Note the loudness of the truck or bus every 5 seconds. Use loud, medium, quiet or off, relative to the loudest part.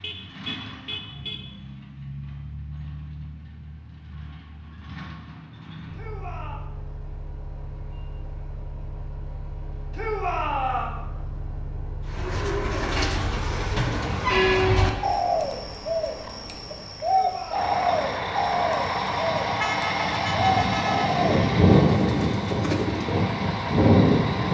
quiet, quiet, medium, medium, loud.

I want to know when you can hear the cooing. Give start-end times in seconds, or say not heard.
12.1-23.1.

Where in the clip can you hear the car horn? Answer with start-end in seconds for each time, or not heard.
0.0-1.6, 19.6-21.1.